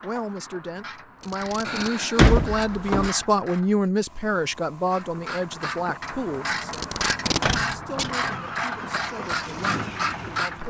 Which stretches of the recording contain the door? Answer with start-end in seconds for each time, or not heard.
1.6-3.1, 7.4-8.4.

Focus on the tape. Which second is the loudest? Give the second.
7 s.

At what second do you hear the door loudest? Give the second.
2 s.